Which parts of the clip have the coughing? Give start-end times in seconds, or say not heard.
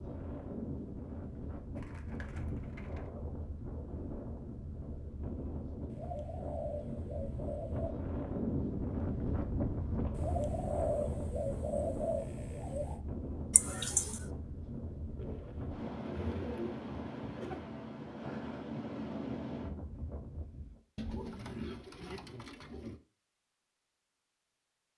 13.5-14.2.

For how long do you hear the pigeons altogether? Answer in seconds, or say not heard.
11 s.